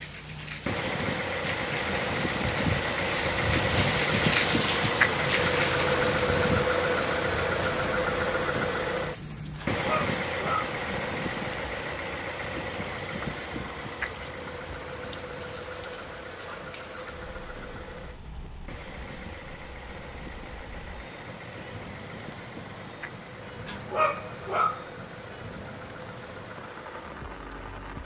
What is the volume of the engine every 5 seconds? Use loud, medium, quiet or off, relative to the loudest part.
loud, loud, medium, quiet, quiet, quiet.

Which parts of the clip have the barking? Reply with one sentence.
The barking can be heard from 9.6 to 10.8 s and from 23.6 to 24.9 s.